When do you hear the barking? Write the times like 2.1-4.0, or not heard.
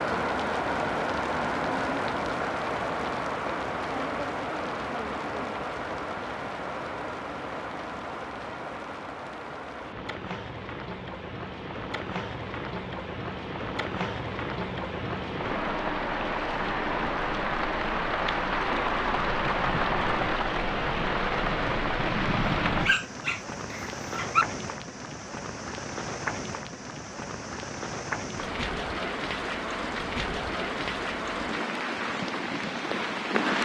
22.6-24.4.